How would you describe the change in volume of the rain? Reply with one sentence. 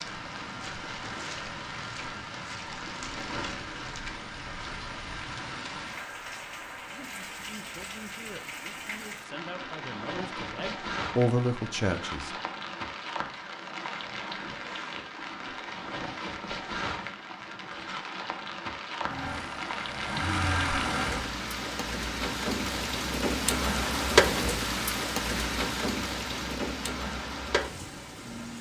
The loudness of the rain goes up.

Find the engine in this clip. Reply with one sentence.
The engine can be heard from 19.0 to 21.4 s.